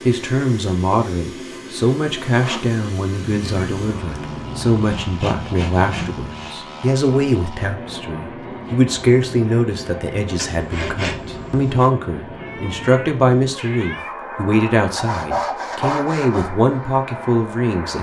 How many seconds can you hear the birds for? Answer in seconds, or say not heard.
not heard.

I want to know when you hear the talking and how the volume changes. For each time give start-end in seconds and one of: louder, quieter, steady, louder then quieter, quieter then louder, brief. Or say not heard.
0.1-17.9 steady.